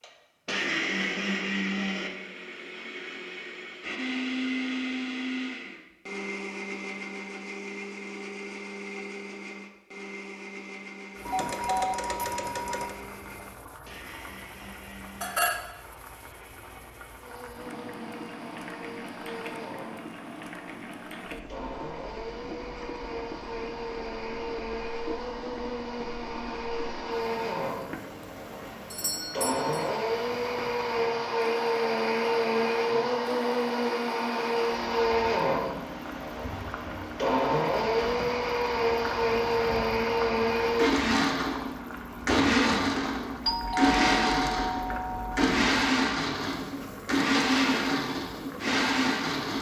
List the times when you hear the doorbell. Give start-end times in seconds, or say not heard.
11.2-12.9, 28.9-29.9, 43.5-45.5.